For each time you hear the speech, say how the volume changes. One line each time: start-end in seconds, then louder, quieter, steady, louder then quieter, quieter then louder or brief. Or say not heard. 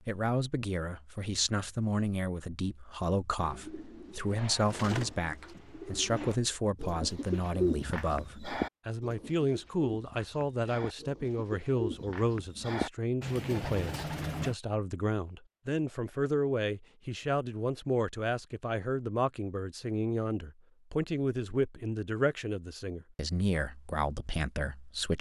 0.1-25.1 steady.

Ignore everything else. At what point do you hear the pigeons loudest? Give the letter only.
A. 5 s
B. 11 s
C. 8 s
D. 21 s
C.